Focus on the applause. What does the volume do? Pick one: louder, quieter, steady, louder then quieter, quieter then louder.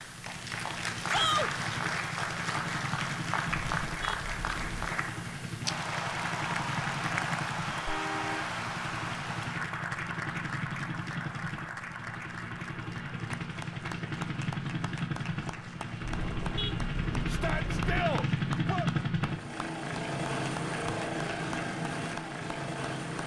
quieter.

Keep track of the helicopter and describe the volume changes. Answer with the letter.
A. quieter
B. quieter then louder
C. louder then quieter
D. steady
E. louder
E.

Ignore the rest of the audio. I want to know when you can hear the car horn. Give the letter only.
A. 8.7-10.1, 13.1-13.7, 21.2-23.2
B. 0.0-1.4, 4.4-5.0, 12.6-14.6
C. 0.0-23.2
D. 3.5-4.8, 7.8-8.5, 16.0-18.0
D.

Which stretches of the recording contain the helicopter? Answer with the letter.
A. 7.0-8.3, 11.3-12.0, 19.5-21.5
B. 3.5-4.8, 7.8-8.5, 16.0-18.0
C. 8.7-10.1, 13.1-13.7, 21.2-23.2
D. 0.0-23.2
D.